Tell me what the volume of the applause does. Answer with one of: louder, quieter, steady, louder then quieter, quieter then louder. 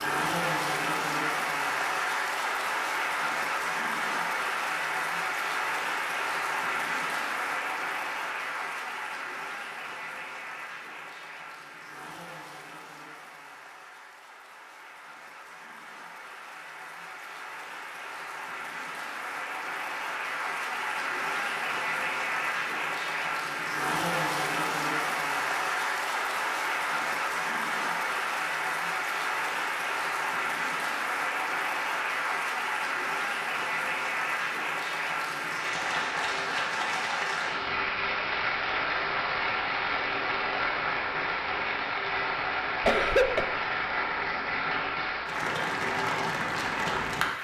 quieter then louder.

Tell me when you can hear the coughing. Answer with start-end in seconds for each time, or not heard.
42.8-43.5.